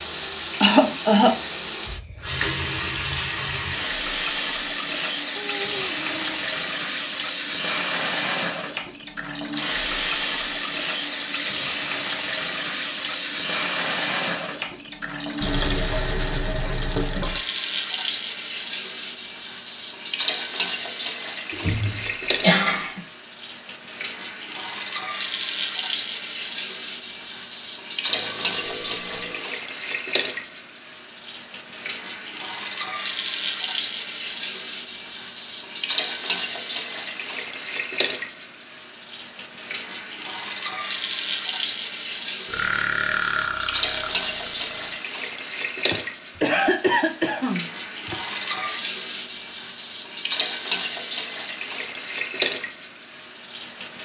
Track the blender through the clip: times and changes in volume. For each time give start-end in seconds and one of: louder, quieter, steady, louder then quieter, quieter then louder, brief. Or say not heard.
not heard.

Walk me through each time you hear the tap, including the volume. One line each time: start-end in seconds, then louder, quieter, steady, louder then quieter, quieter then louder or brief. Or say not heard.
0.0-54.0 steady.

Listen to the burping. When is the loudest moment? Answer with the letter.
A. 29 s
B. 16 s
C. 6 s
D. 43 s
D.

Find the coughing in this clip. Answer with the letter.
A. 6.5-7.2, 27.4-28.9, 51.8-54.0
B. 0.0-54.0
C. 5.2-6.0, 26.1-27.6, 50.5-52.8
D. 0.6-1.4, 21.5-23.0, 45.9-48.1
D.